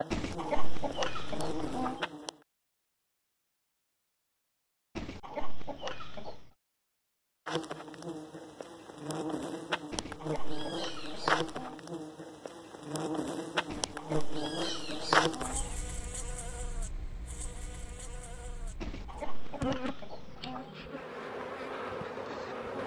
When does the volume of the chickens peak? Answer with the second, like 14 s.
1 s.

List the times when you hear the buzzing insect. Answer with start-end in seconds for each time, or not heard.
0.0-2.4, 7.5-22.8.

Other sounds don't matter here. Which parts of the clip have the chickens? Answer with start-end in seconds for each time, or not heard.
0.1-1.9, 5.0-6.5, 9.9-11.8, 13.7-15.7, 18.8-20.6.